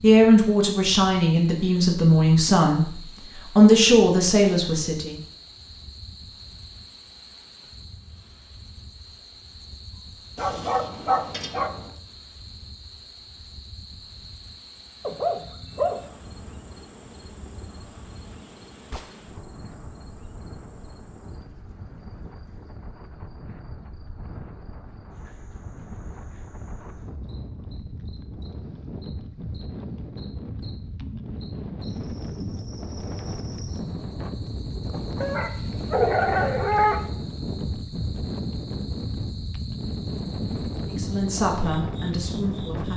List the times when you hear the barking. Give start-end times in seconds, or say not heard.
10.3-11.9, 15.1-16.1, 35.2-37.0.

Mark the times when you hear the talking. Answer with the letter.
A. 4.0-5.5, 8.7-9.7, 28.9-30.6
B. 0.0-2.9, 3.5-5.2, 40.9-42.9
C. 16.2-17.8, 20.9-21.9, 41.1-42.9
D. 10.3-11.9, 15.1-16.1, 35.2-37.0
B.